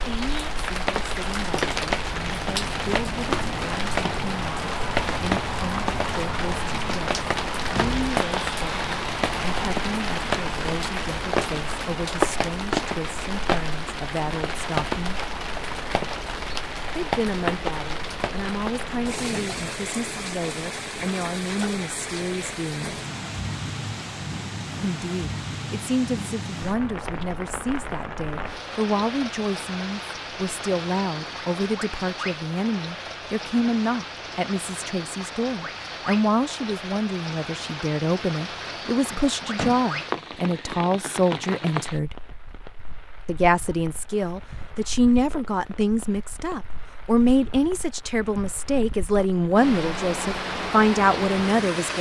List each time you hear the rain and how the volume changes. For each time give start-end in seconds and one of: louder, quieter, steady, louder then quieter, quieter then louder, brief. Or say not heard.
0.0-51.9 quieter.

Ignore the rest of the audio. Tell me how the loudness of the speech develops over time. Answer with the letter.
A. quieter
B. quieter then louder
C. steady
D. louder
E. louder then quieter
D.